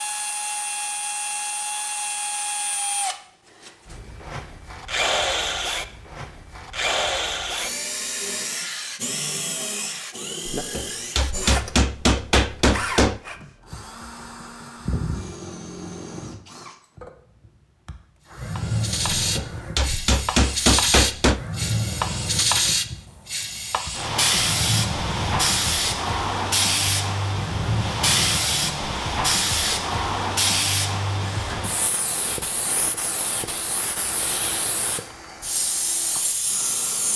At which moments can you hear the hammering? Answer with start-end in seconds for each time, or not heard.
10.6-13.2, 19.2-21.4.